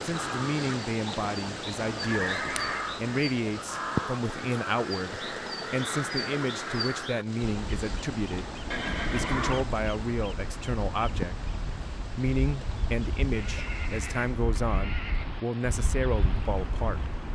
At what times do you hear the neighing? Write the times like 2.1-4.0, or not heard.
2.0-3.0, 8.7-9.7, 13.3-15.3.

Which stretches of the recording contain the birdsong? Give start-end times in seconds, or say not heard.
0.0-17.3.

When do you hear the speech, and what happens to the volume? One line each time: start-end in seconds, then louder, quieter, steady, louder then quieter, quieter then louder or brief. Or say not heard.
0.0-17.3 steady.